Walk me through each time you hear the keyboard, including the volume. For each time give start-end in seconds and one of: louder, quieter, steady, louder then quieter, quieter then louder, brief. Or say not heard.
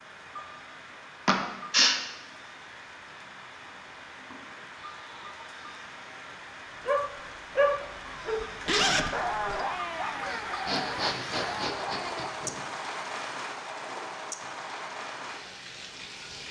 not heard.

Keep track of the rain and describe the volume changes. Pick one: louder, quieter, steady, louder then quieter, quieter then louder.
louder.